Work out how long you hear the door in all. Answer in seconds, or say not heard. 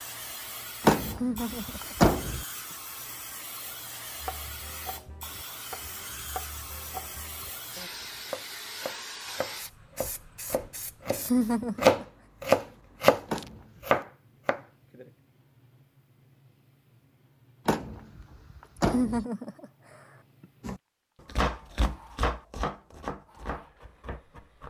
4 s.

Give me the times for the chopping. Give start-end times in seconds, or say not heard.
4.2-15.1, 20.6-24.6.